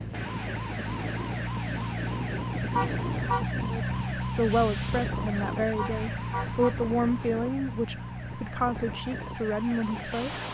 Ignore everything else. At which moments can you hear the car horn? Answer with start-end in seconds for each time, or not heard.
2.7-3.5, 5.8-6.8.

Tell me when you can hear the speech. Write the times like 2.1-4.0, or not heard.
3.6-10.3.